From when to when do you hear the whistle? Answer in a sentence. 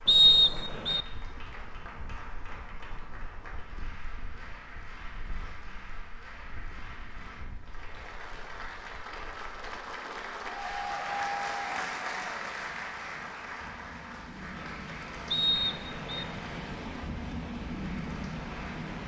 The whistle can be heard from 0.1 to 1.1 s and from 15.3 to 16.2 s.